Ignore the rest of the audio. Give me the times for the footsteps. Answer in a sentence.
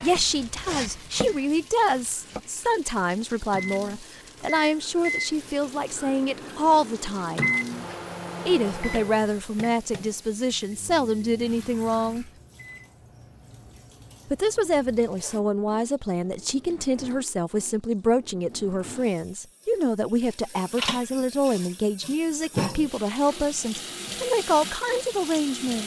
The footsteps can't be heard in this clip.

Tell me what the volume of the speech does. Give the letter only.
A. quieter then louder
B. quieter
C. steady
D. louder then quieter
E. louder
C.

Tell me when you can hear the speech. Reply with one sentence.
The speech can be heard from 0.0 to 7.5 s, from 8.4 to 12.3 s and from 14.3 to 25.8 s.